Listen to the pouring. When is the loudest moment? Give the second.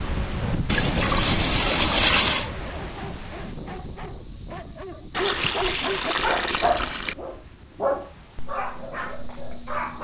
2 s.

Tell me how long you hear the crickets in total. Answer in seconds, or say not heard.
10 s.